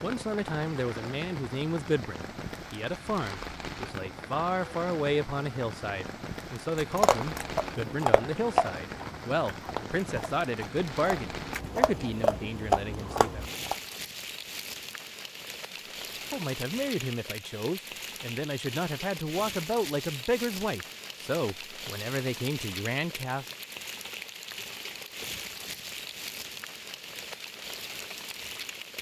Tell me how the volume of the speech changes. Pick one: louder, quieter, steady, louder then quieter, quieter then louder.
steady.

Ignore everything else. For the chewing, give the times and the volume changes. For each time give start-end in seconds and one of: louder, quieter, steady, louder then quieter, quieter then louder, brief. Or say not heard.
6.8-13.8 quieter then louder.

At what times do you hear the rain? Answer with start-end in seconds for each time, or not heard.
0.0-28.9.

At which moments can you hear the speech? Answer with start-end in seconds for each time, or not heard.
0.0-13.4, 16.3-23.4.